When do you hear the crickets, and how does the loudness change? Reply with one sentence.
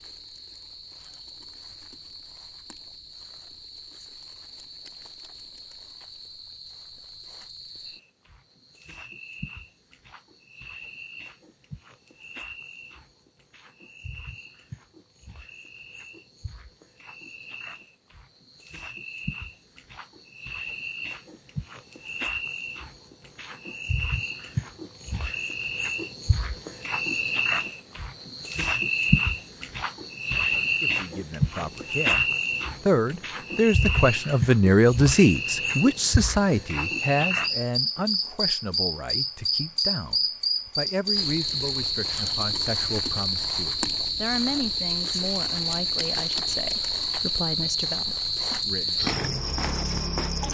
The crickets can be heard from 0.0 to 50.4 s, getting louder.